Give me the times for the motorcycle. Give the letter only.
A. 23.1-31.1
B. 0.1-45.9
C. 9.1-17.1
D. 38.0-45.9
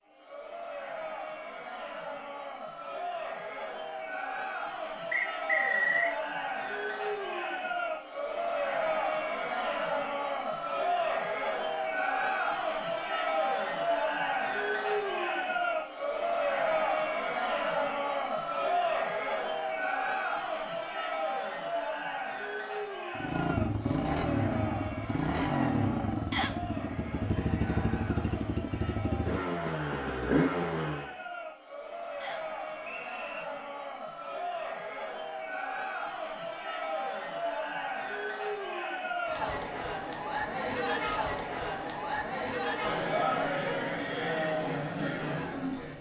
A.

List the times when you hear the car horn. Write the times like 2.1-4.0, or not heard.
not heard.